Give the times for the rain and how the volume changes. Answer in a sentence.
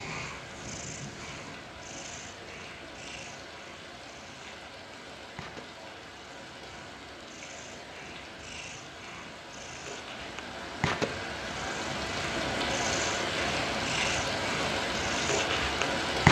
You can hear the rain from 0.0 to 16.2 s, getting louder.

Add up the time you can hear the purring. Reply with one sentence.
You can hear the purring for 16 seconds altogether.